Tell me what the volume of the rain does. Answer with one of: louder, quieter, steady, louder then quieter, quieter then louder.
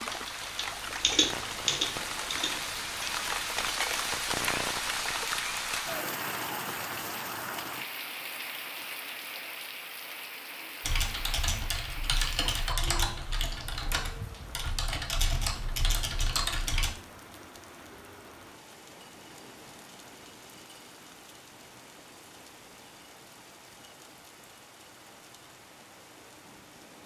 quieter.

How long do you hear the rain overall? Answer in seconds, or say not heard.
27 s.